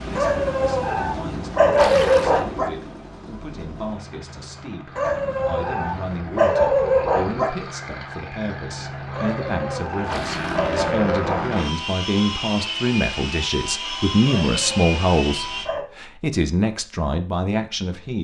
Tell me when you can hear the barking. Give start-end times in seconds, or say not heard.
0.1-2.7, 5.0-7.5, 9.1-11.5, 14.2-15.8.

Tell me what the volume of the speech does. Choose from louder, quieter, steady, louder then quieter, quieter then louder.
louder.